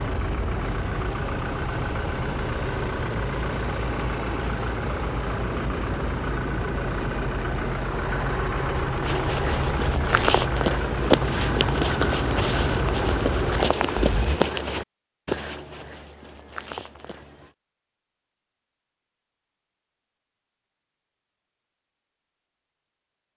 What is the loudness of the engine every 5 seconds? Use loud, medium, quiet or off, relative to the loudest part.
loud, loud, loud, off, off.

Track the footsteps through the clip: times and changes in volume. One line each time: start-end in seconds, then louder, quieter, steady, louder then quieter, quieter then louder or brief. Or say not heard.
9.0-17.5 quieter.